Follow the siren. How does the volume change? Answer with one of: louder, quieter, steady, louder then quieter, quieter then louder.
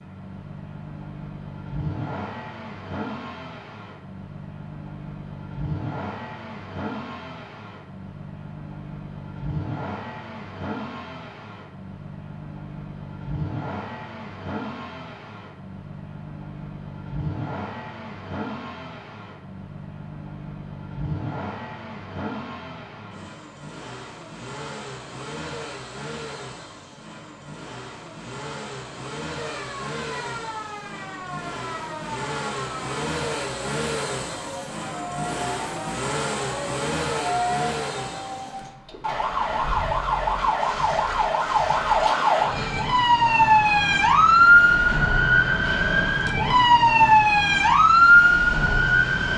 louder.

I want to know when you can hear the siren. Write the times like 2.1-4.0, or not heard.
29.4-49.3.